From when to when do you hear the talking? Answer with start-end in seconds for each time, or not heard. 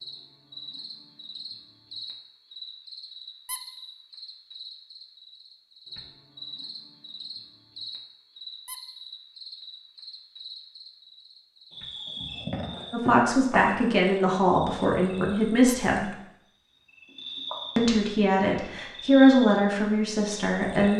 12.9-16.1, 17.8-20.9.